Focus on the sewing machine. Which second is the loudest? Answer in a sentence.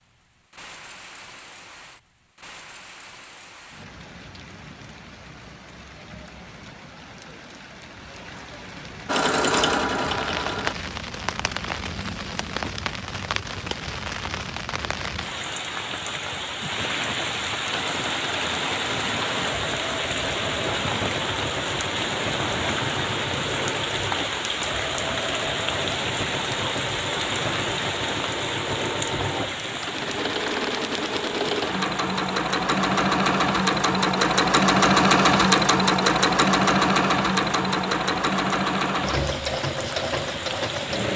The volume of the sewing machine peaks at 35 seconds.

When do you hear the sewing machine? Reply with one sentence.
The sewing machine can be heard from 9.1 to 10.8 s and from 17.7 to 41.1 s.